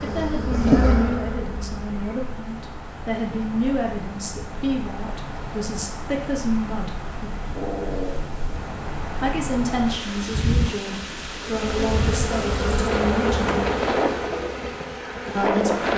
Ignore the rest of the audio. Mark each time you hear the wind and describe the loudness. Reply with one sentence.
You can hear the wind from 0.0 to 15.9 s, getting louder.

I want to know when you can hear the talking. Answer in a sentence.
The talking can be heard from 0.0 to 7.3 s, from 9.2 to 13.7 s and from 15.3 to 15.9 s.